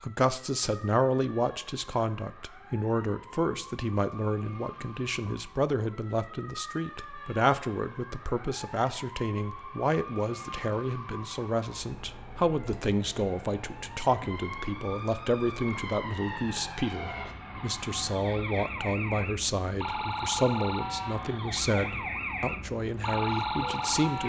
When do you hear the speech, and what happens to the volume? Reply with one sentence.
The speech can be heard from 0.0 to 24.2 s, at a steady volume.